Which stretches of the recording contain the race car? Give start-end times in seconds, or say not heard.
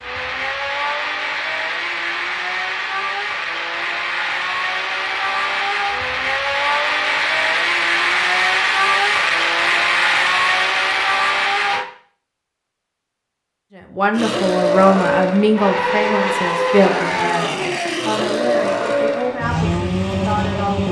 0.0-11.8, 14.1-20.8.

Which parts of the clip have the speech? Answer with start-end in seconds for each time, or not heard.
13.9-20.8.